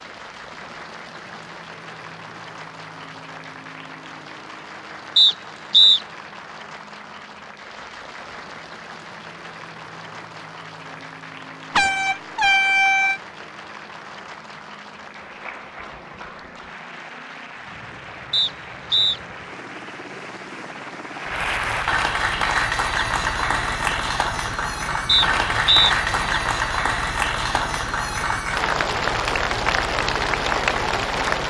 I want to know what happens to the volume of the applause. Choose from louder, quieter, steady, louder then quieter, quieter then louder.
louder.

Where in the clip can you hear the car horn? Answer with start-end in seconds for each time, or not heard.
11.7-13.2.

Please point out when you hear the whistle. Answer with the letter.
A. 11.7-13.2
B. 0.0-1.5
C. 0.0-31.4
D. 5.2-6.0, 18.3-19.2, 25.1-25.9
D.